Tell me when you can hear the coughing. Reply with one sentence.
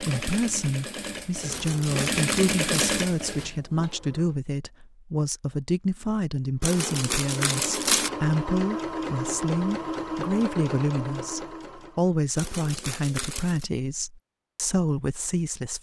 The coughing can't be heard in this clip.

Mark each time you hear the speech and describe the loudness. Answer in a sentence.
You can hear the speech from 0.0 to 15.7 s, at a steady volume.